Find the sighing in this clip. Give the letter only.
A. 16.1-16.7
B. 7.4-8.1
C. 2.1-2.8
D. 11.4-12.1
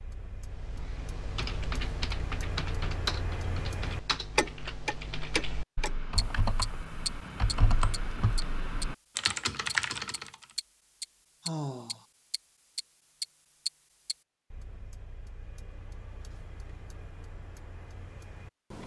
D.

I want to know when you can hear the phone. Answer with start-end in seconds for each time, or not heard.
not heard.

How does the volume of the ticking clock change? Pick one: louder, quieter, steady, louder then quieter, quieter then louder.
louder then quieter.